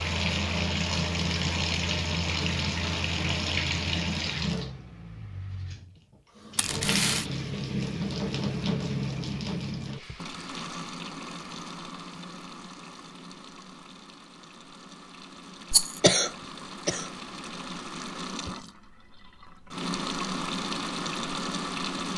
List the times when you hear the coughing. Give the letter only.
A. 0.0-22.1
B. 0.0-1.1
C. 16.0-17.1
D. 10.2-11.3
C.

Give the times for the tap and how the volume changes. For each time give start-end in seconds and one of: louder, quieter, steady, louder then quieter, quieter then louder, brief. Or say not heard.
0.0-22.1 quieter then louder.